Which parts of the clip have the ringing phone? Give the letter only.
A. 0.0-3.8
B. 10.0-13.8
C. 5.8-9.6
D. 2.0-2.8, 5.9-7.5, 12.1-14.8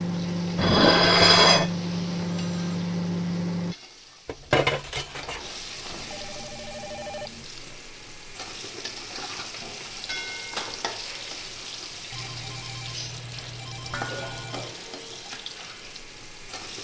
D.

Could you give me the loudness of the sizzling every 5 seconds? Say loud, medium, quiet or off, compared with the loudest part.
medium, loud, loud, loud.